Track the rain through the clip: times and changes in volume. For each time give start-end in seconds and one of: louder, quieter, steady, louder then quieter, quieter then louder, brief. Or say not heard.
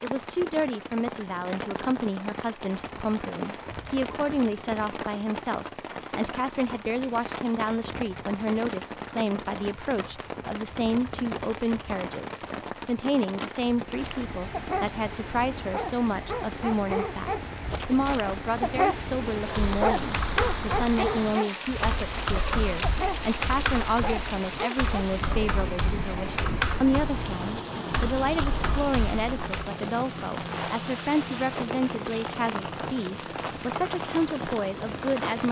0.0-35.4 steady.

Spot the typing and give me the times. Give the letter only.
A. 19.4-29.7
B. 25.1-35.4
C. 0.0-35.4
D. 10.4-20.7
A.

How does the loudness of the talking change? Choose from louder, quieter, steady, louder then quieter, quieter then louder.
steady.